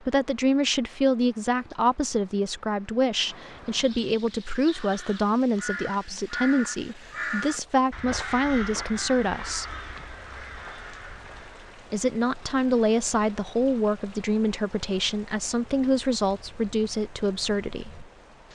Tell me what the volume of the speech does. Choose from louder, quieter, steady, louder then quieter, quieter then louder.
steady.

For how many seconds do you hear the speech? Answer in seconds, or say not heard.
16 s.